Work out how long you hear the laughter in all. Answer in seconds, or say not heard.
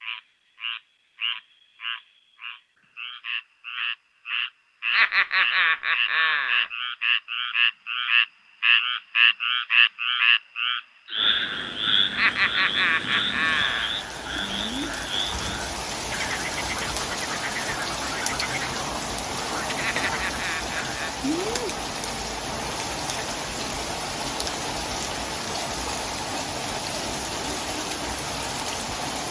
5 s.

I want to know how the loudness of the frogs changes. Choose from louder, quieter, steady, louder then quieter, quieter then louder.
louder then quieter.